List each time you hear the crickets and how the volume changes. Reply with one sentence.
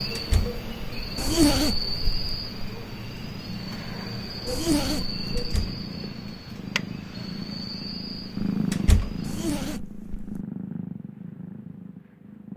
You can hear the crickets from 0.0 to 9.8 s, getting quieter.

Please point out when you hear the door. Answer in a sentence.
You can hear the door from 0.1 to 0.6 s, from 5.3 to 5.8 s and from 8.7 to 9.2 s.